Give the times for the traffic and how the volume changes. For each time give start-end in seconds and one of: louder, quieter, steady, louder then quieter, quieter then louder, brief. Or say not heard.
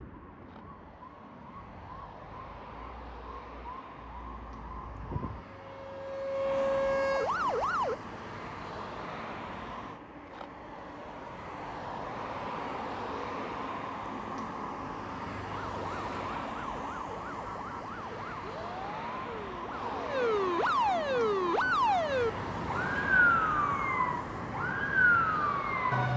0.0-26.1 louder.